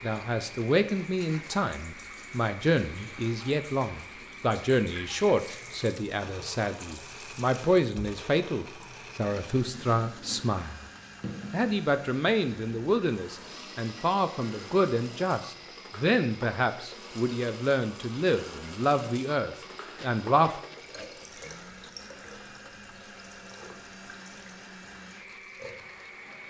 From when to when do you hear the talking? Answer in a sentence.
The talking can be heard from 0.0 to 10.8 s and from 11.5 to 20.6 s.